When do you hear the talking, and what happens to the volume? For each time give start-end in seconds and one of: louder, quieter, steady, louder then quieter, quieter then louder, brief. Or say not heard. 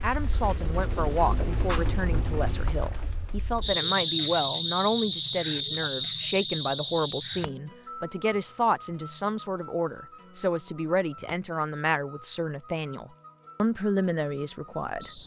0.0-15.2 steady.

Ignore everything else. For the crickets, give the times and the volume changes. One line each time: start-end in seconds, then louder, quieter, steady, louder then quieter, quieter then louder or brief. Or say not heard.
0.0-15.2 louder then quieter.